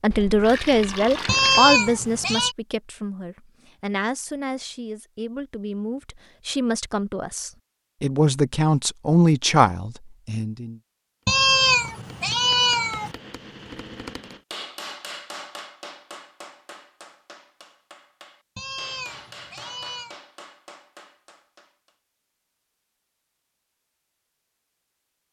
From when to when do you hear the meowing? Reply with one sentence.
You can hear the meowing from 1.2 to 2.5 s, from 11.2 to 13.2 s and from 18.6 to 20.1 s.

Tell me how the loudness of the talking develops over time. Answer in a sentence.
The volume of the talking goes down, then up.